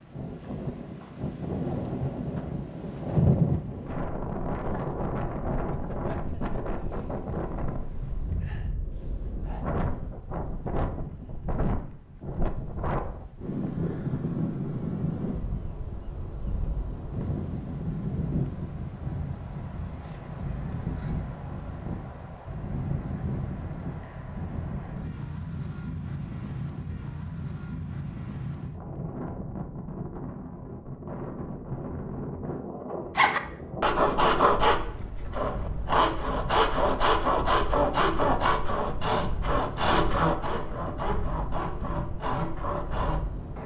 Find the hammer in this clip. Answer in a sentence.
You can't hear the hammer here.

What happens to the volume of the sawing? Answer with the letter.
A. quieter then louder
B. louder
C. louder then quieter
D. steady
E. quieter
E.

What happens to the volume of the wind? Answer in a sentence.
The volume of the wind goes down.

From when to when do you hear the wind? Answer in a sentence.
You can hear the wind from 0.0 to 43.6 s.